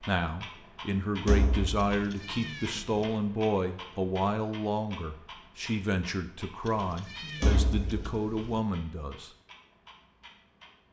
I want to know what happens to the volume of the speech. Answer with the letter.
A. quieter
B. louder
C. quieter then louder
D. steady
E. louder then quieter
D.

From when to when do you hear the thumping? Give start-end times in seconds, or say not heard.
1.2-1.9, 7.4-8.2.